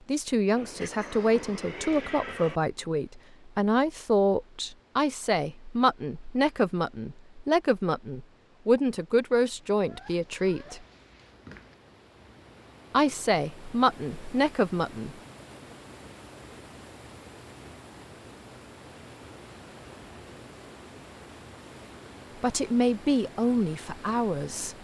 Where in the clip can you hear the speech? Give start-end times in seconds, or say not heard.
0.1-10.8, 12.9-15.2, 22.4-24.7.